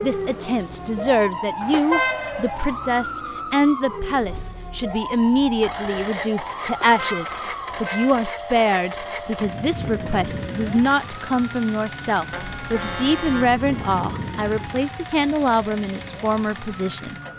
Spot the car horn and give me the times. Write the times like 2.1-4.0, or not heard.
1.6-2.8, 6.7-8.2, 12.3-14.0.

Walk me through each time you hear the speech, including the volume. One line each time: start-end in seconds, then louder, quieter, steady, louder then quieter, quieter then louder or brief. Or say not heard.
0.0-17.1 steady.